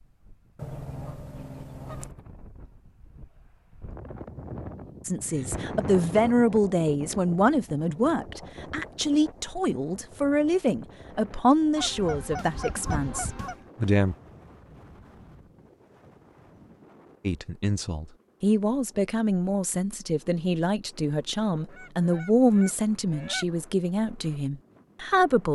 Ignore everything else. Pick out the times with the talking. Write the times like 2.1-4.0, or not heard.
5.0-14.2, 17.2-25.4.